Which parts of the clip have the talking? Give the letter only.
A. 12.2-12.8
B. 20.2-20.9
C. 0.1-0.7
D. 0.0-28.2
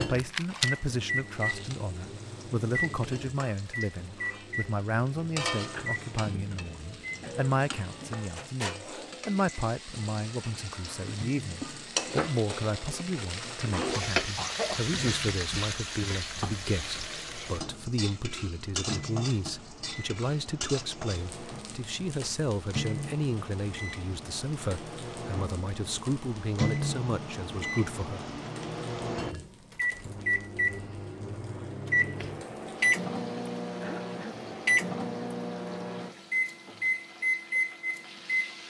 D.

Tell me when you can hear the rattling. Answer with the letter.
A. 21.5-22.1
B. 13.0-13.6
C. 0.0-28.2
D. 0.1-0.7
D.